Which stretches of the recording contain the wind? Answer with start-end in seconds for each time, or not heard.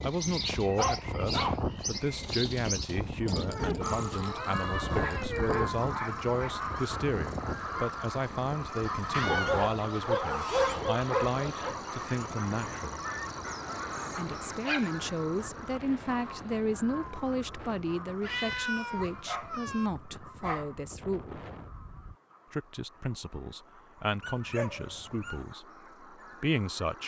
0.0-22.1.